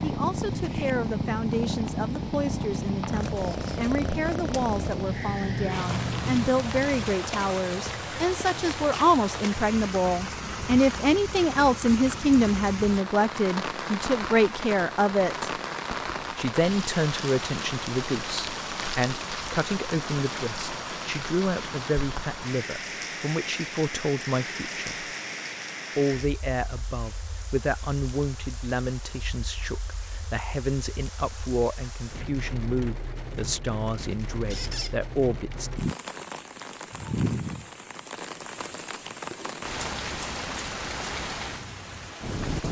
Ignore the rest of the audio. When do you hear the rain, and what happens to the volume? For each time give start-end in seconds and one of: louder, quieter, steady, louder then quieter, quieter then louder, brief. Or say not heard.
0.0-42.6 quieter then louder.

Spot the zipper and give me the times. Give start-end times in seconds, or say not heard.
not heard.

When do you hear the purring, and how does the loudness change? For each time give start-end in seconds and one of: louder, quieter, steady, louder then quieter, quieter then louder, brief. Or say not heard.
0.0-7.2 steady.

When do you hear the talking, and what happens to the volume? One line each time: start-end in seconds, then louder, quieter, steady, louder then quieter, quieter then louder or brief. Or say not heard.
0.0-15.5 louder
16.4-25.1 steady
25.9-35.7 steady.